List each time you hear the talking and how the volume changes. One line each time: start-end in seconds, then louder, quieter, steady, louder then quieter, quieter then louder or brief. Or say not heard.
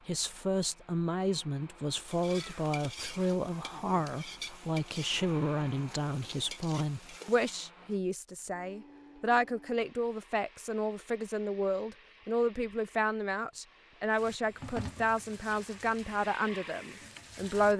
0.1-17.7 steady.